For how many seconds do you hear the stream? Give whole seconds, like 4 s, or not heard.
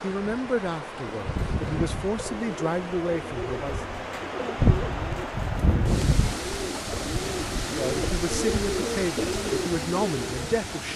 11 s.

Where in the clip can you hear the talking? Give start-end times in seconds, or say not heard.
0.0-3.8, 7.7-10.9.